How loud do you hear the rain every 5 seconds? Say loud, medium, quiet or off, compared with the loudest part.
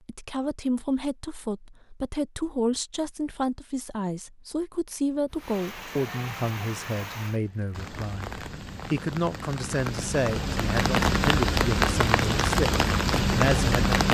off, quiet, loud.